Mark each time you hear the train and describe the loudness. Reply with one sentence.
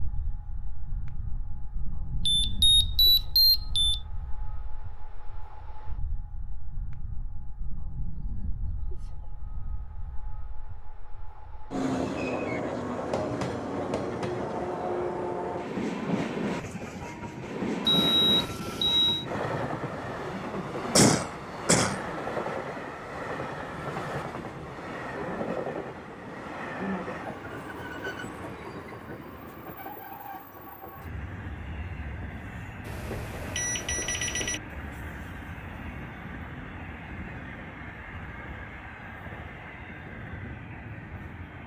You can hear the train from 0.0 to 41.6 s, getting louder then quieter.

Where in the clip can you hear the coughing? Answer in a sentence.
You can hear the coughing from 20.9 to 22.0 s.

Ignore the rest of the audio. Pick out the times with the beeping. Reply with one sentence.
The beeping can be heard from 2.2 to 4.0 s, from 17.9 to 19.2 s and from 32.9 to 34.6 s.